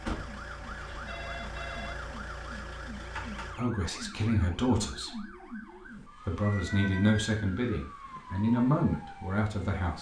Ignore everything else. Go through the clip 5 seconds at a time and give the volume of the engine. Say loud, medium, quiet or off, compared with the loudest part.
loud, off.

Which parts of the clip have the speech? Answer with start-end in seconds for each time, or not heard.
3.5-9.9.